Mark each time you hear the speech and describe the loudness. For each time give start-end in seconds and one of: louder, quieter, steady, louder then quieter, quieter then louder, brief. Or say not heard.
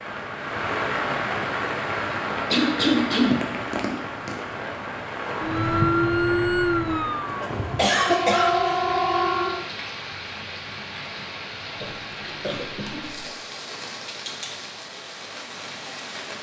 not heard.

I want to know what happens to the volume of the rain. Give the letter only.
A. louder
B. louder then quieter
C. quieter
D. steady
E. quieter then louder
C.